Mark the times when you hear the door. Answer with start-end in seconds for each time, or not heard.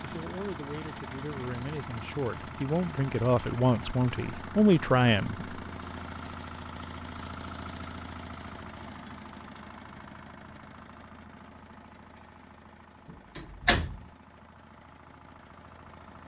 13.1-14.1.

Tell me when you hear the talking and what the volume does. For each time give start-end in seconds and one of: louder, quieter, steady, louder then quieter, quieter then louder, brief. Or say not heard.
0.0-5.5 louder.